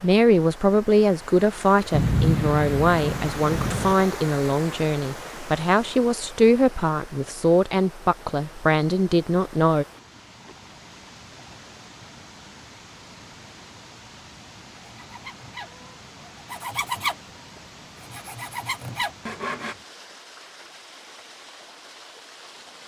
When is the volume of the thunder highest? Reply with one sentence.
The loudest moment of the thunder is at 2 seconds.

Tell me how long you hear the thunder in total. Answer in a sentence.
You can hear the thunder for 2 seconds altogether.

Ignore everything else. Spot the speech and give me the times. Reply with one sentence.
The speech can be heard from 0.0 to 9.8 s.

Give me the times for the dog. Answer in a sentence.
You can't hear the dog here.